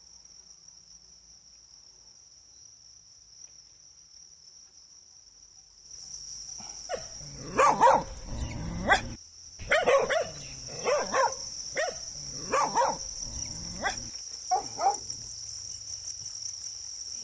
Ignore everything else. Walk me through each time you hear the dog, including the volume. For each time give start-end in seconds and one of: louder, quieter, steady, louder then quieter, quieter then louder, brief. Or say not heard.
6.8-15.0 quieter.